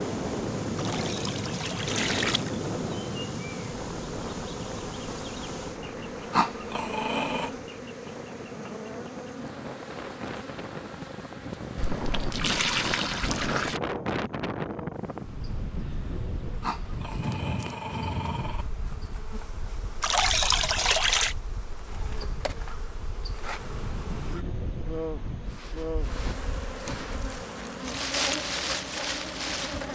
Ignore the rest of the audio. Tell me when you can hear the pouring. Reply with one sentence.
The pouring can be heard from 0.8 to 2.7 s, from 11.8 to 13.8 s and from 20.0 to 21.4 s.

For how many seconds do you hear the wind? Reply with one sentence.
The wind can be heard for 30 seconds in total.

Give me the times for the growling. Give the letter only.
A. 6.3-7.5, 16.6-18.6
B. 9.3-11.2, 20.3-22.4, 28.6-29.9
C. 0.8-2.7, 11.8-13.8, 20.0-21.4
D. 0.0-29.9
A.